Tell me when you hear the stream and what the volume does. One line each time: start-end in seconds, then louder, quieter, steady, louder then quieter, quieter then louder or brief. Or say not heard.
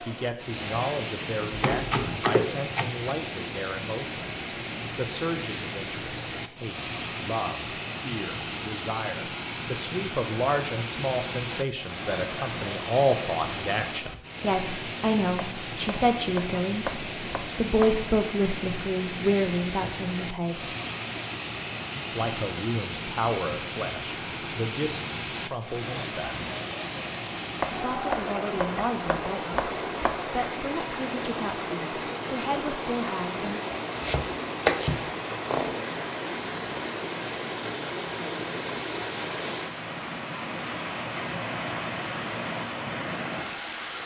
0.0-44.0 steady.